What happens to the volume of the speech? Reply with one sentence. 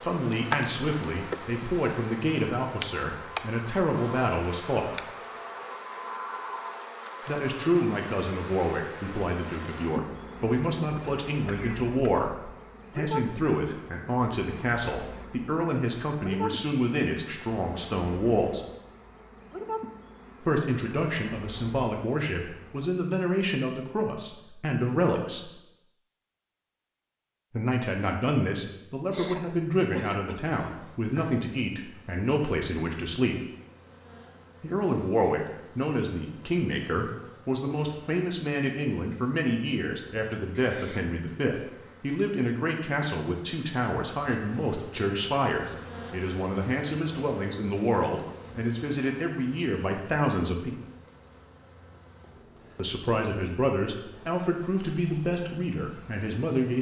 The loudness of the speech stays about the same.